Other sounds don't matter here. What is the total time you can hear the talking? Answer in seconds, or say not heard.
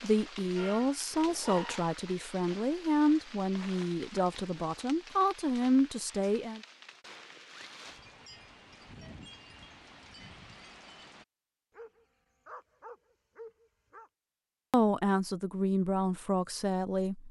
9 s.